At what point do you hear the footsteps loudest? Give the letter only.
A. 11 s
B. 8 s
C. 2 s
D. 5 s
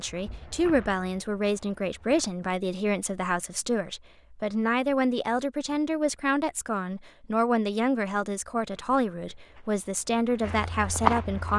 A.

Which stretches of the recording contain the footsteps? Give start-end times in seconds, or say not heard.
0.0-2.4, 8.7-11.5.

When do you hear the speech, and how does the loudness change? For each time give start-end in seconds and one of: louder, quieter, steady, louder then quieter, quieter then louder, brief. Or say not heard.
0.0-11.5 steady.